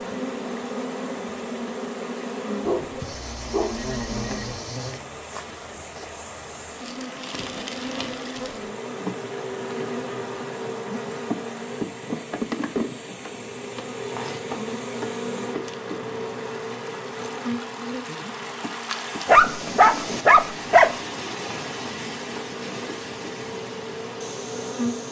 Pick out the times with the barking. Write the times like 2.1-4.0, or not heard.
2.6-4.5, 19.2-20.9.